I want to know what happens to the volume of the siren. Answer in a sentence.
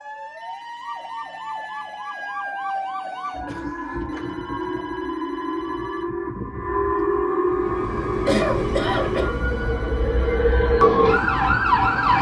The volume of the siren goes up.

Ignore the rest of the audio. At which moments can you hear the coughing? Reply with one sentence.
The coughing can be heard from 3.2 to 4.2 s and from 8.2 to 9.3 s.